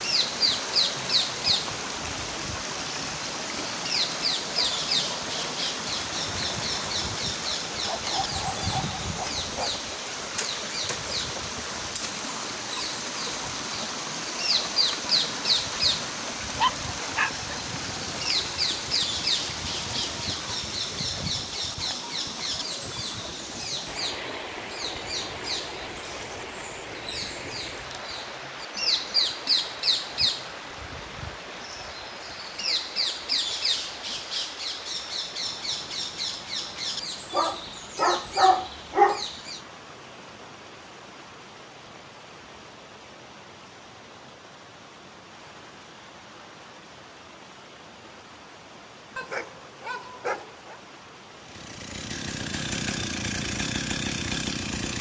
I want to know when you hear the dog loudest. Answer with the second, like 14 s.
39 s.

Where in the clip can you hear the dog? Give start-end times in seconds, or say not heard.
7.8-9.8, 16.6-17.6, 37.3-39.2, 49.1-50.8.